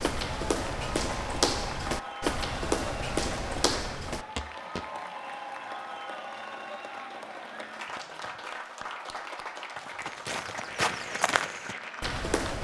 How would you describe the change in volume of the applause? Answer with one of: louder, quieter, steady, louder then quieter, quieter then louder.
steady.